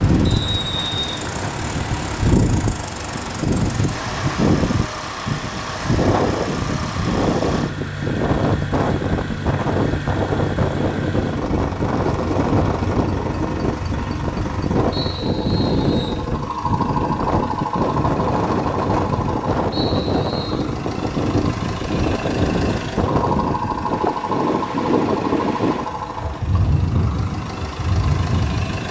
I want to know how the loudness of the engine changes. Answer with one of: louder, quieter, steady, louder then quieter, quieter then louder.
steady.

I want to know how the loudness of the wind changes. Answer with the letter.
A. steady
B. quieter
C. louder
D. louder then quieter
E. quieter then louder
A.